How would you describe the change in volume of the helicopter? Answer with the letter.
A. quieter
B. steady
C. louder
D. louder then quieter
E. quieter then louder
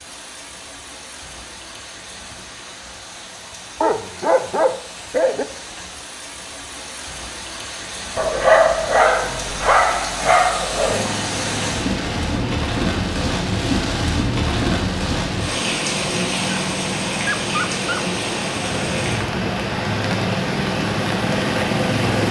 C.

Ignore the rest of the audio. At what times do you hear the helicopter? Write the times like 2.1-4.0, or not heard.
10.8-22.2.